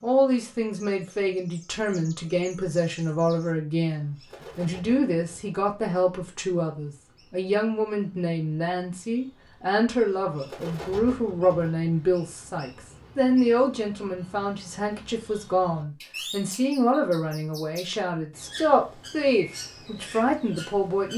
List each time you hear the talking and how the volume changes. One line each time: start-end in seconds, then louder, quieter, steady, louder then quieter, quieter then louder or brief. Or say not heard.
0.0-21.1 steady.